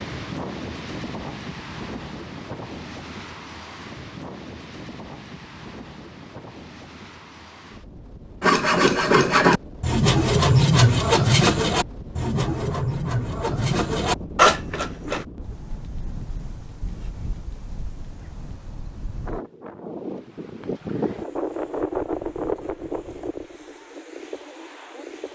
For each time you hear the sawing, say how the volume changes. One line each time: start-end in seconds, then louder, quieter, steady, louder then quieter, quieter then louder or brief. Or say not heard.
8.4-15.2 quieter then louder.